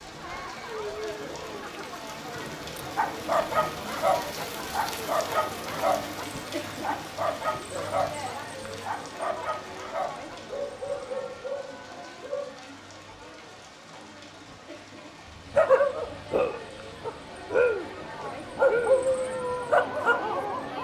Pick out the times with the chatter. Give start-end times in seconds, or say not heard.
0.0-20.7.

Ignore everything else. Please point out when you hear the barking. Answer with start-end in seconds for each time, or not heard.
3.0-12.6, 15.4-20.7.